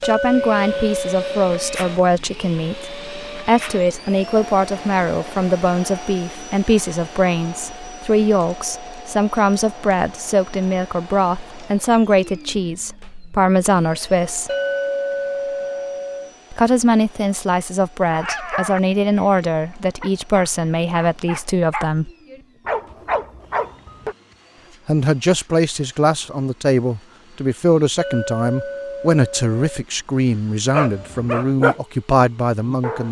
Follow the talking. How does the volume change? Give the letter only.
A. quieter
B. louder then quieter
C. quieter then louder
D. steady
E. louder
D.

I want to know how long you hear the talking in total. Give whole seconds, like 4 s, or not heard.
28 s.